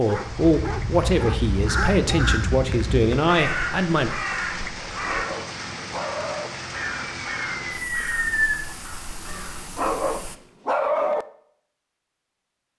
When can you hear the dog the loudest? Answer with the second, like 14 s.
11 s.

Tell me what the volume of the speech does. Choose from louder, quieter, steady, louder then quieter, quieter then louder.
steady.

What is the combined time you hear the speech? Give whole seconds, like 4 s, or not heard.
4 s.